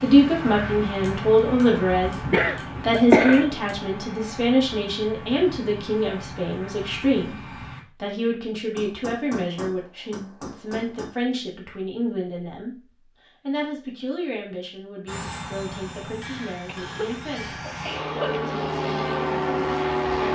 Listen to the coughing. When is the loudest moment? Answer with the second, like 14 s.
3 s.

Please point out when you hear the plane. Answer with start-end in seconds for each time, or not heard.
0.0-7.8, 15.1-20.2.